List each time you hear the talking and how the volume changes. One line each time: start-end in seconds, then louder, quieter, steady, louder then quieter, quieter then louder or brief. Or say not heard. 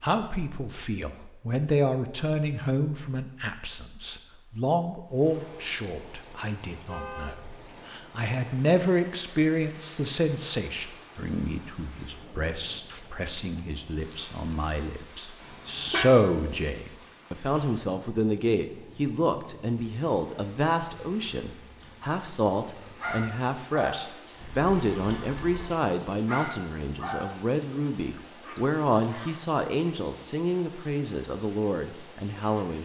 0.0-32.8 steady.